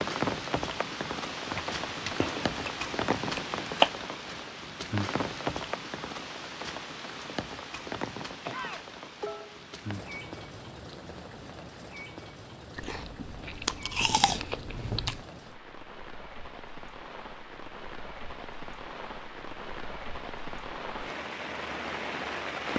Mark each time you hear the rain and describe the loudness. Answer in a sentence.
The rain can be heard from 0.0 to 22.7 s, getting quieter then louder.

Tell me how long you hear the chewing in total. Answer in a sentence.
You can hear the chewing for 5 seconds altogether.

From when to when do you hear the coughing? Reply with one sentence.
You can hear the coughing from 8.4 to 9.7 s.